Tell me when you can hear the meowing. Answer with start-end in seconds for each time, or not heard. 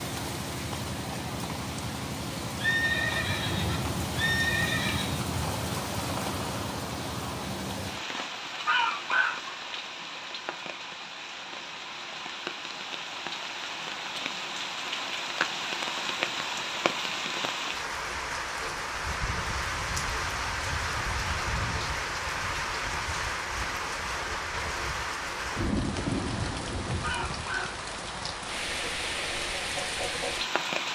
not heard.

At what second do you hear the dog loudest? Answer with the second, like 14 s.
9 s.